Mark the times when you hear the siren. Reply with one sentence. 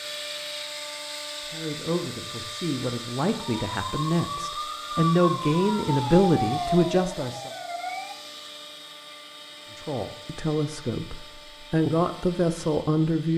You can hear the siren from 3.5 to 8.2 s.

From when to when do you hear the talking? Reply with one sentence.
The talking can be heard from 1.4 to 7.5 s and from 9.8 to 13.3 s.